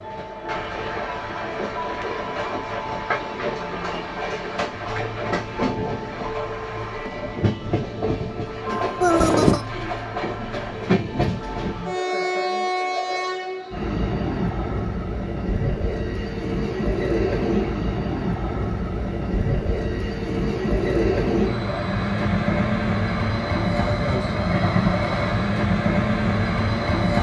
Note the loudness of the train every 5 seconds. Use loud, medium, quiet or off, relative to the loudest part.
medium, medium, loud, loud, loud, loud.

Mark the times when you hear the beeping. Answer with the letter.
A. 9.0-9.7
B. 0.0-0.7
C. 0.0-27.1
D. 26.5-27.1
A.